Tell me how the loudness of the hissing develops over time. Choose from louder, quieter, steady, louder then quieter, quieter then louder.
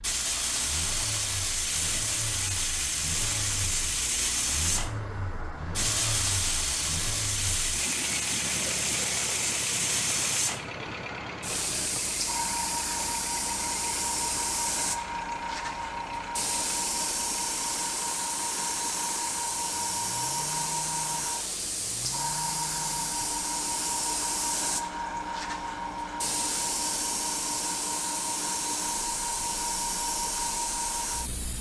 steady.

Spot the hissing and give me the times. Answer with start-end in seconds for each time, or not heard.
0.0-31.5.